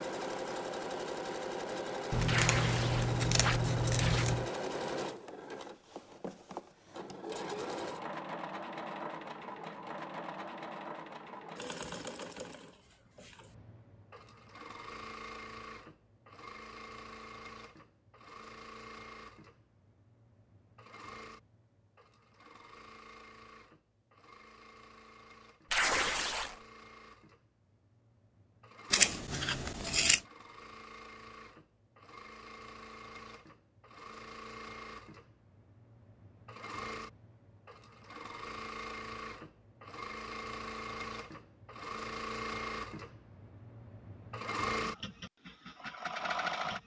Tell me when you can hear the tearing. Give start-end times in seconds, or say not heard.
2.2-4.2, 25.7-26.6.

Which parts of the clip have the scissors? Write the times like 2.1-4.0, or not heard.
2.1-4.5, 28.9-30.2.